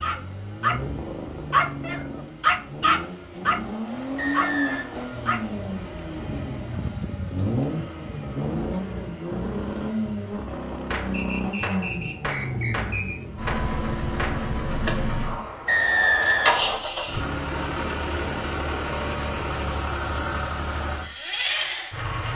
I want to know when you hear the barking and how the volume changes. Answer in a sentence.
The barking can be heard from 0.0 to 8.2 s, getting quieter.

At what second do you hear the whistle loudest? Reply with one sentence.
The loudest moment of the whistle is at 16 seconds.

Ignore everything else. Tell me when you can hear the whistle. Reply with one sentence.
You can hear the whistle from 4.2 to 4.8 s, from 11.1 to 13.2 s and from 15.7 to 16.8 s.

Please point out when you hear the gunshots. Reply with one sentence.
You can hear the gunshots from 10.9 to 14.5 s.